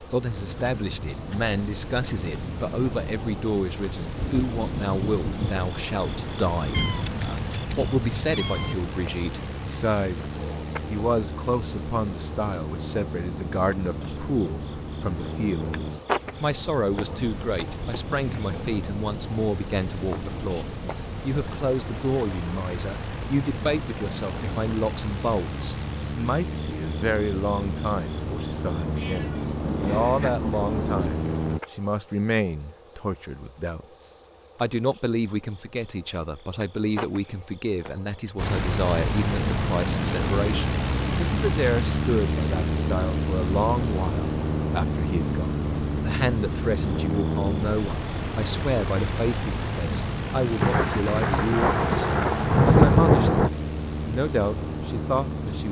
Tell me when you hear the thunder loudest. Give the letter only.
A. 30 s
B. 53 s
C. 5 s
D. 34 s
B.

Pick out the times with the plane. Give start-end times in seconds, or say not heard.
0.0-31.6, 38.4-55.6.